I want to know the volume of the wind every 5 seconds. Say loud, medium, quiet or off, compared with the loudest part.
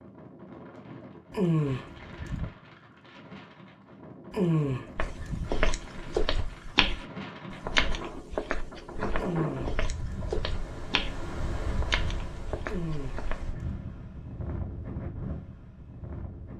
medium, loud, loud, loud.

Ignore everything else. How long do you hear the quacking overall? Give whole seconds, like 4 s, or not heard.
5 s.